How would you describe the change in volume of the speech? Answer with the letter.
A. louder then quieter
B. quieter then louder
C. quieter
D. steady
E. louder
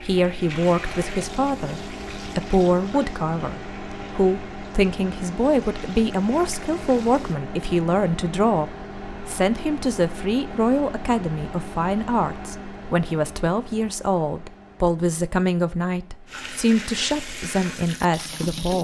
D.